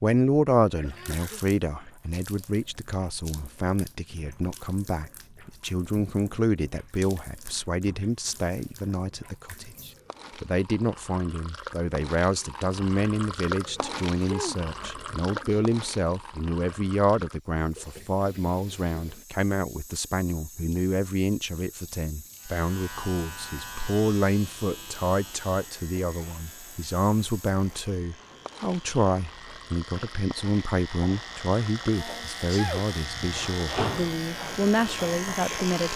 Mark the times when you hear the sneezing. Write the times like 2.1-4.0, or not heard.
0.8-1.4, 13.8-15.7, 31.8-32.9.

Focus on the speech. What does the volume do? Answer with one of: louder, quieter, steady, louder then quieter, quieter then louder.
steady.